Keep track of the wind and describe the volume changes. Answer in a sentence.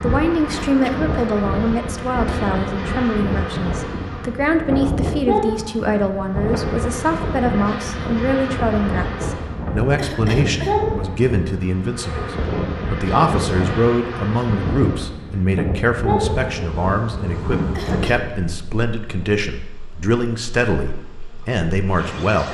The volume of the wind stays about the same.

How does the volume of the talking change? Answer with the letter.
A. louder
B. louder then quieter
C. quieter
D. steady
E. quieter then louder
D.